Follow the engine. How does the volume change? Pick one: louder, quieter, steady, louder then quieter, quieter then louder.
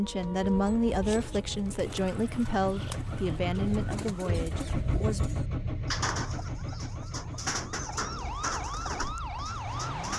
louder then quieter.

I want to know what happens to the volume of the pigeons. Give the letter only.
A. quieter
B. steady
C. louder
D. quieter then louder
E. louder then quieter
C.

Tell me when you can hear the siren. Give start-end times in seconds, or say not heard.
0.0-4.3, 6.4-10.1.